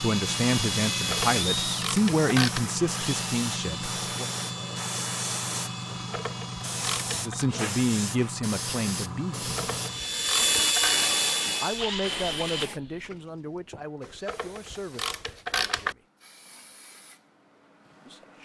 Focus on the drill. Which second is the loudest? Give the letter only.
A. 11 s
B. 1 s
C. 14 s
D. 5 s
A.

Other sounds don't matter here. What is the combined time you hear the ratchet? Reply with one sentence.
The ratchet can be heard for 7 seconds in total.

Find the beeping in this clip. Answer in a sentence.
You can't hear the beeping here.